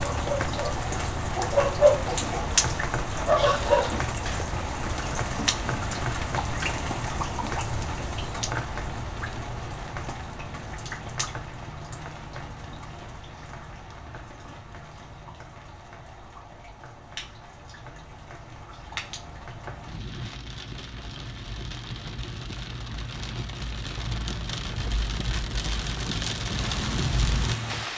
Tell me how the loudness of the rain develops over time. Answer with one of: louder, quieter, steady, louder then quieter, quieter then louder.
quieter then louder.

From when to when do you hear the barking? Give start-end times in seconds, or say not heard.
0.0-4.0.